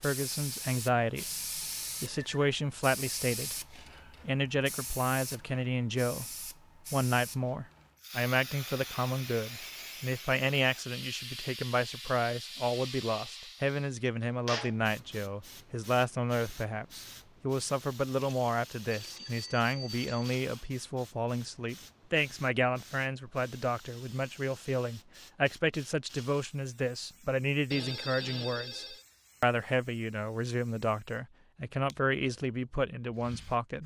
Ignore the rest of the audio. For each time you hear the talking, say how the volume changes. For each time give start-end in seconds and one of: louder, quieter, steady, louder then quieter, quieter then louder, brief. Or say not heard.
0.0-1.4 brief
2.0-33.8 steady.